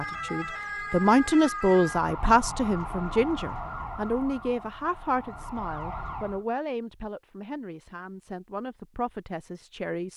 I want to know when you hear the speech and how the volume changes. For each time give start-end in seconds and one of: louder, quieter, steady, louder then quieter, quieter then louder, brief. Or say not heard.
0.0-10.1 quieter.